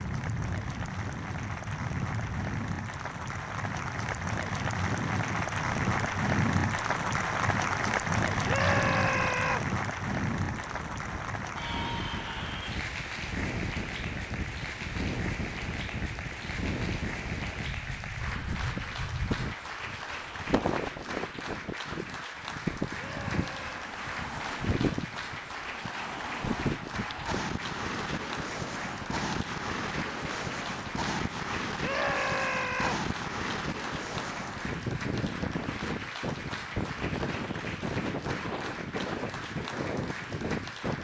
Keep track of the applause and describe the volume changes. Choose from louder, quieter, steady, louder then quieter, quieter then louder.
quieter.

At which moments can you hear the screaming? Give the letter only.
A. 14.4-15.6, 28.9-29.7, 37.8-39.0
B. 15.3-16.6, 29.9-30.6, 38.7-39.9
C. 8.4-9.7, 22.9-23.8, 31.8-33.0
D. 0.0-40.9
C.